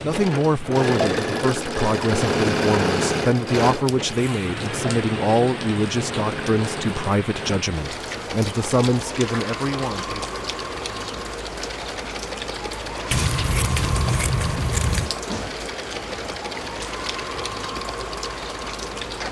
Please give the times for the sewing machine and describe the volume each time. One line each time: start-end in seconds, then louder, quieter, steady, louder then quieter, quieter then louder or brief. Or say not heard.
0.0-19.2 quieter.